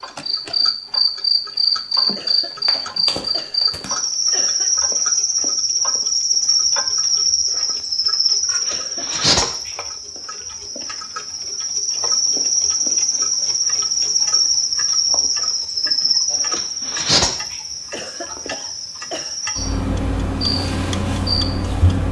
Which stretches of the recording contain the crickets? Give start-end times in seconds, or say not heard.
0.0-22.0.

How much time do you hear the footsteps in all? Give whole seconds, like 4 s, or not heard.
not heard.